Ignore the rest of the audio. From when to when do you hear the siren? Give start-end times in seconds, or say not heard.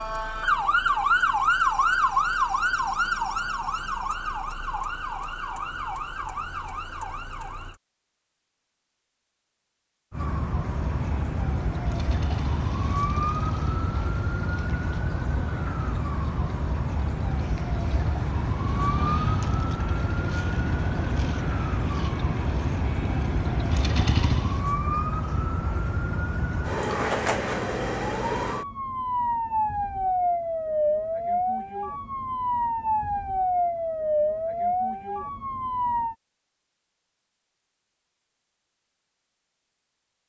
0.0-7.8, 10.1-36.1.